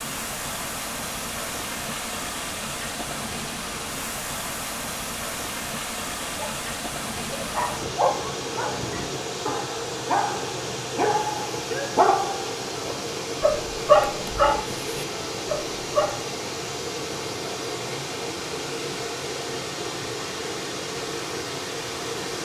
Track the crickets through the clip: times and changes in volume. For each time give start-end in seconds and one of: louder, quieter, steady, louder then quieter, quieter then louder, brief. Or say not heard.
not heard.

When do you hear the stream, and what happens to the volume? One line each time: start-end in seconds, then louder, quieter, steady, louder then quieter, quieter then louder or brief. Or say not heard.
0.0-22.4 steady.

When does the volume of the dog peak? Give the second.
14 s.